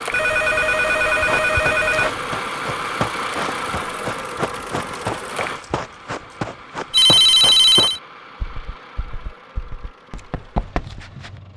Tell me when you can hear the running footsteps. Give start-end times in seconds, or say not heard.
1.2-11.3.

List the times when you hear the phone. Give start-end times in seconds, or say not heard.
0.1-2.2, 6.9-8.0.